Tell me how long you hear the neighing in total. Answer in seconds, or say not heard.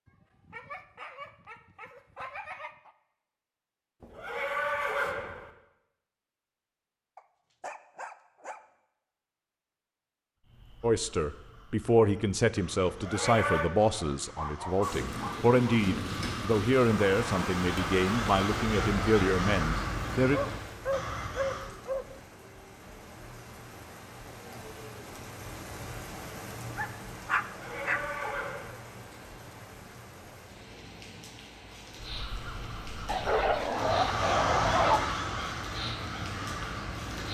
4 s.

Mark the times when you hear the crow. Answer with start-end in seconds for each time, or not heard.
10.4-21.8, 31.9-37.2.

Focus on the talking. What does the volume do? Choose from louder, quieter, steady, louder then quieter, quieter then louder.
steady.